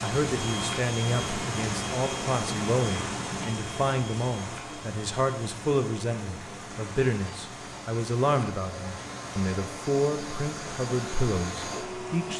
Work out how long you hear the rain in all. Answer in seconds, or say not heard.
12 s.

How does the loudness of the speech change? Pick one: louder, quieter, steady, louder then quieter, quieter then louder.
steady.